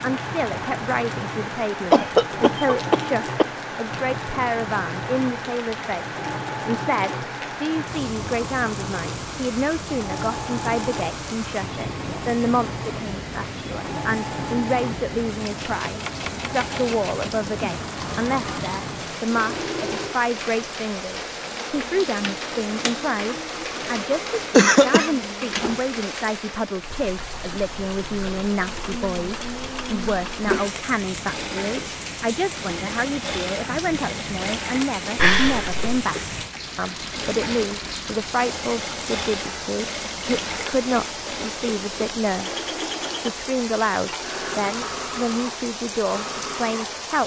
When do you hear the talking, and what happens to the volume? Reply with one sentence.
The talking can be heard from 0.0 to 47.2 s, at a steady volume.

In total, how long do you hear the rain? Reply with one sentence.
You can hear the rain for 47 seconds altogether.